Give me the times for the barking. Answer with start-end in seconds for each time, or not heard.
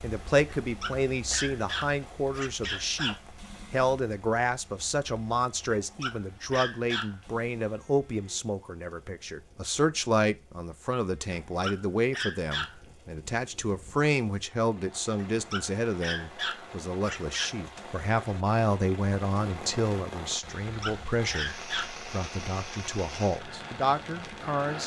0.5-3.2, 5.7-7.2, 11.3-12.8, 15.2-17.6, 20.6-22.0.